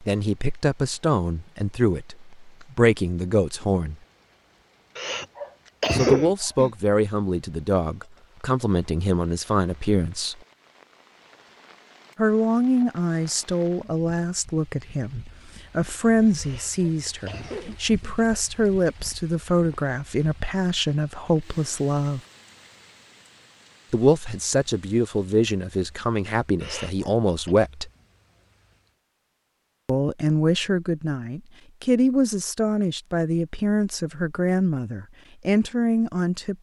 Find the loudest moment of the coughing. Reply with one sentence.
The loudest moment of the coughing is at 6 seconds.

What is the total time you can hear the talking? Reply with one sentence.
You can hear the talking for 29 seconds altogether.